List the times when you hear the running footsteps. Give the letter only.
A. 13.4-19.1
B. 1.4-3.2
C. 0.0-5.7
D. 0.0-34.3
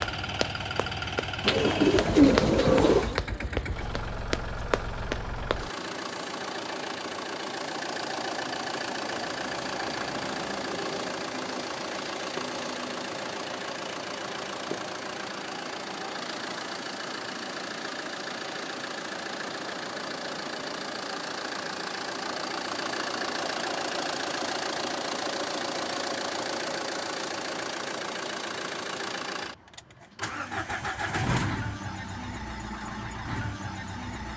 C.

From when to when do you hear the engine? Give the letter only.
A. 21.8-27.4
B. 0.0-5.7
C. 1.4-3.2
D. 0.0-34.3
D.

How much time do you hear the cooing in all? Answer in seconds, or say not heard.
2 s.